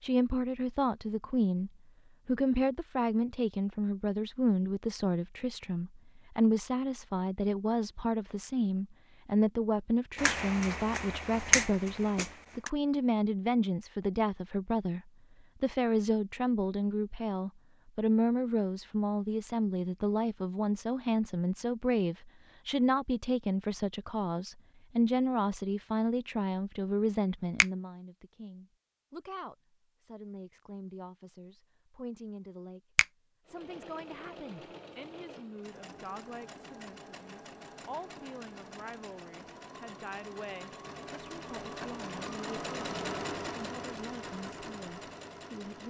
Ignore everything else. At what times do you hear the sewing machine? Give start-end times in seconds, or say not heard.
33.5-45.8.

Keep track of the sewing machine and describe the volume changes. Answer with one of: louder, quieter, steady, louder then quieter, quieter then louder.
louder.